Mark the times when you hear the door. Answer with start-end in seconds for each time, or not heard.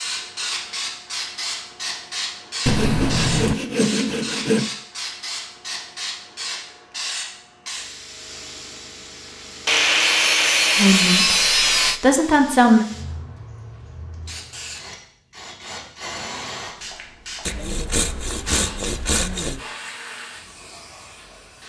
not heard.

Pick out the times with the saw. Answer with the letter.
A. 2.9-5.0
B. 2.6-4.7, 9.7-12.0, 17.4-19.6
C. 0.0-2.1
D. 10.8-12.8
B.